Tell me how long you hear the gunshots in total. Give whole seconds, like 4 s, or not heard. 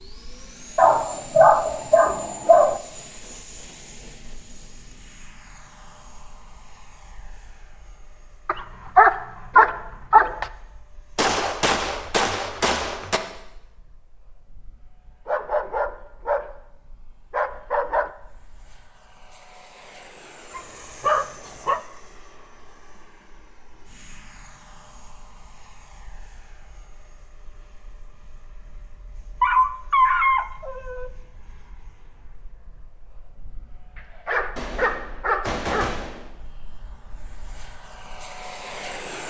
4 s.